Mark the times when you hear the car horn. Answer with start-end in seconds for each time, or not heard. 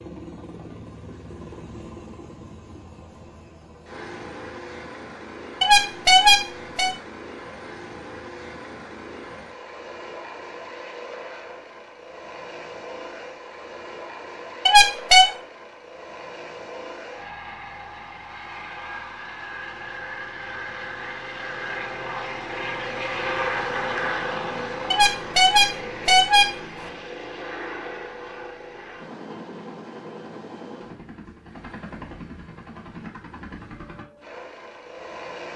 5.6-7.0, 14.7-15.2, 24.9-26.9.